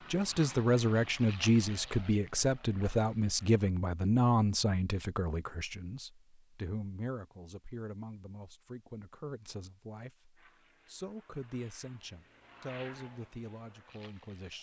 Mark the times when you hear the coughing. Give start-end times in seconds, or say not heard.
not heard.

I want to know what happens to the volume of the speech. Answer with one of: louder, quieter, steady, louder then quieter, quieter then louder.
quieter.